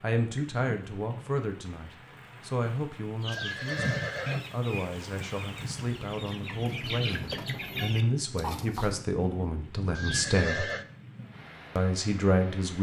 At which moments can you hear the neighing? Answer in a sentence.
You can hear the neighing from 3.2 to 4.5 s and from 9.9 to 10.8 s.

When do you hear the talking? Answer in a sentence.
The talking can be heard from 0.0 to 10.7 s and from 11.8 to 12.7 s.